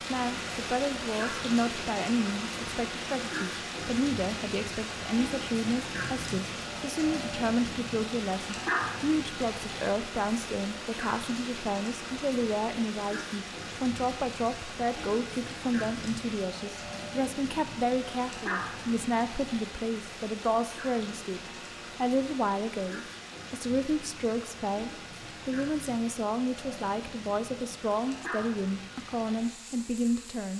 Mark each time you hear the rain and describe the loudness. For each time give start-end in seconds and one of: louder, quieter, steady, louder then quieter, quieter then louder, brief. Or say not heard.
0.0-30.5 quieter.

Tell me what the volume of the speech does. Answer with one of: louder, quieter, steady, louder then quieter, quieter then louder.
steady.